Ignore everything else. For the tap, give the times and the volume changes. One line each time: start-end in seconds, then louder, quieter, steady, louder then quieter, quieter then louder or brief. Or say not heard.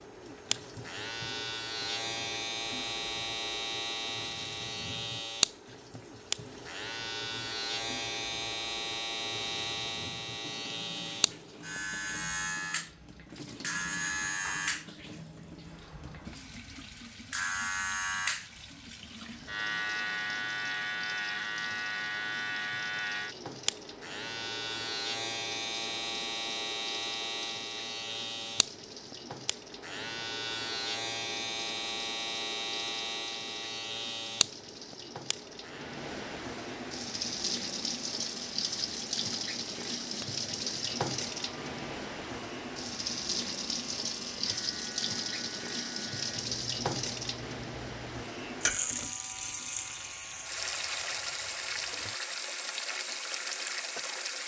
0.0-54.4 louder.